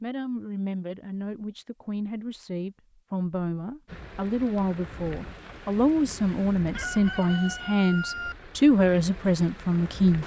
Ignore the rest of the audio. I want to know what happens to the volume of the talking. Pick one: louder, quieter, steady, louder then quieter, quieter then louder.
louder.